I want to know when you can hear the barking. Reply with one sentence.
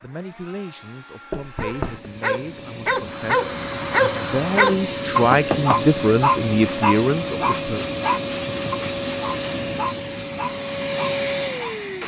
You can hear the barking from 1.6 to 11.8 s.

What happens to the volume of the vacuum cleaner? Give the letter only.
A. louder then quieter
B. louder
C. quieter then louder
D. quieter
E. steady
B.